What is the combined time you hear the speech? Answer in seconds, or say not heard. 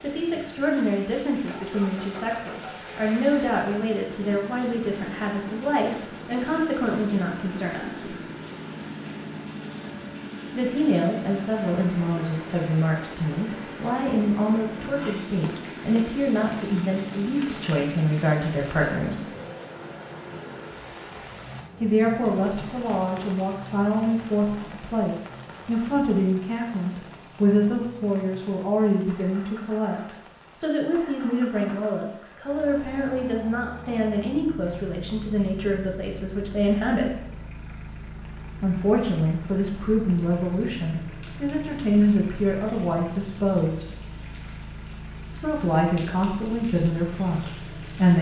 40 s.